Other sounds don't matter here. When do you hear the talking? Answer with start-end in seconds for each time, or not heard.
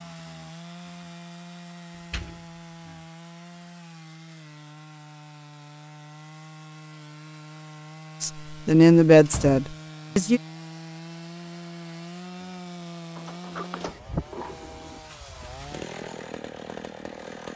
8.2-10.4.